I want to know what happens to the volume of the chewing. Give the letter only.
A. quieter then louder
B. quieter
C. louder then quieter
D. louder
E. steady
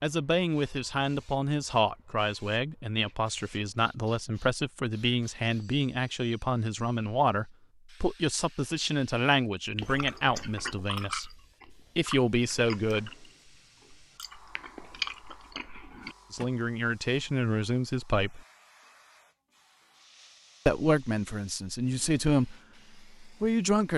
A.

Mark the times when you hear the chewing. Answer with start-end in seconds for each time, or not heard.
9.8-16.4.